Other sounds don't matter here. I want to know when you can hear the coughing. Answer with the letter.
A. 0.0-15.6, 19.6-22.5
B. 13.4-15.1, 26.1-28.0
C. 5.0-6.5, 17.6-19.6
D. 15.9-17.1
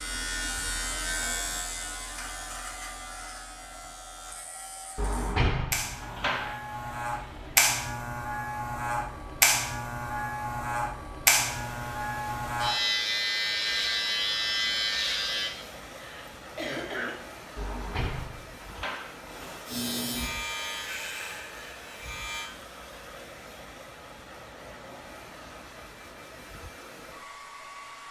D.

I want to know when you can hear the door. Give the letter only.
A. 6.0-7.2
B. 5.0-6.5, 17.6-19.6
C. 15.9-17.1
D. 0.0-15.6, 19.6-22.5
B.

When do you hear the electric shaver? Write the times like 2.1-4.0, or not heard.
0.0-15.6, 19.6-22.5.